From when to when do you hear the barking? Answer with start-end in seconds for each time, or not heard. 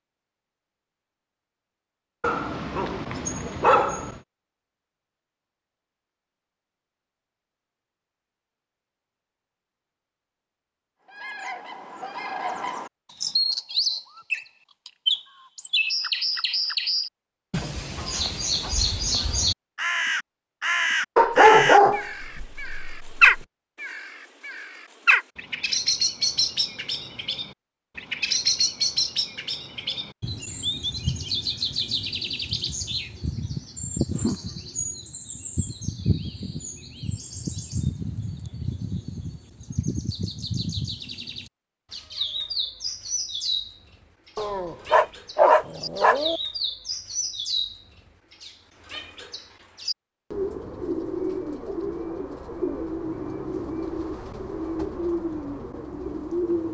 2.2-4.2, 21.1-23.4, 44.4-46.4.